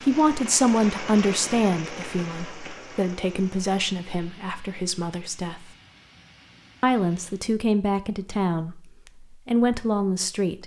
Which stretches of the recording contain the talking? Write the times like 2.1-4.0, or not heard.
0.0-5.7, 6.8-10.6.